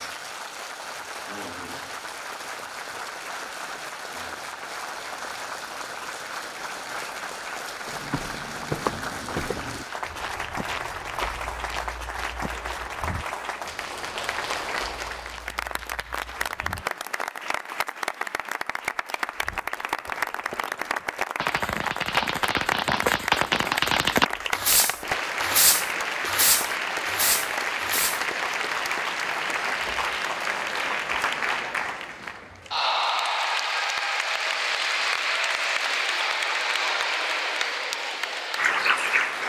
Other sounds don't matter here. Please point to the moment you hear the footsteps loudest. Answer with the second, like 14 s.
9 s.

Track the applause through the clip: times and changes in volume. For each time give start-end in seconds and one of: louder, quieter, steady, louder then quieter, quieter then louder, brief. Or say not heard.
0.0-39.4 louder.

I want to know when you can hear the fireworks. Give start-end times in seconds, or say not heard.
21.4-28.2.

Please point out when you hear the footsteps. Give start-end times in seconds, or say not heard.
7.8-16.9.